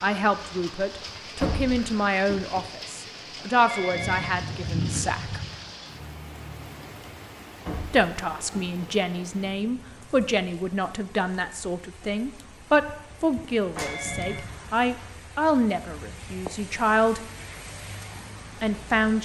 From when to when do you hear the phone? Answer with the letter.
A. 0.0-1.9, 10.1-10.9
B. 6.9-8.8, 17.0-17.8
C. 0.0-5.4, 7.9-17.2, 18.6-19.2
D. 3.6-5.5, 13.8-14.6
D.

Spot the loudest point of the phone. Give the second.
5 s.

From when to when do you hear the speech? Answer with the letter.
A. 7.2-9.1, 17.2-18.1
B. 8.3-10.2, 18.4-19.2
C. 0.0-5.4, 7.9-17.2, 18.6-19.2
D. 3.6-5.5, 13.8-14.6
C.